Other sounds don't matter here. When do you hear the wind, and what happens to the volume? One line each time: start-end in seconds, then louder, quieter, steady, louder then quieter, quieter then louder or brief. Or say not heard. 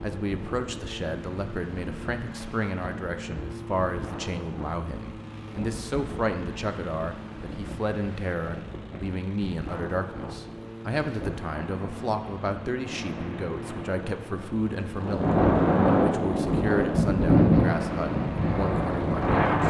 0.0-19.6 louder.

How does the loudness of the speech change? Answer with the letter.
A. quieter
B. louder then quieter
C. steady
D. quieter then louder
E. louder
C.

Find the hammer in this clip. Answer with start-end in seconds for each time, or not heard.
not heard.